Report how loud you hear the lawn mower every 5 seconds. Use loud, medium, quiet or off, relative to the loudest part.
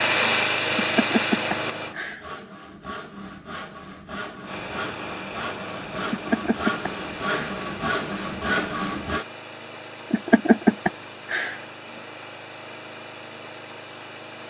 loud, quiet, quiet.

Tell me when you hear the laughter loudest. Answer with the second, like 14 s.
11 s.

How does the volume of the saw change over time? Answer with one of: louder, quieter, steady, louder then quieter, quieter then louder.
louder.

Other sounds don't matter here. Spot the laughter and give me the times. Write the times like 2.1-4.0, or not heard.
0.8-2.2, 6.1-7.5, 10.1-11.6.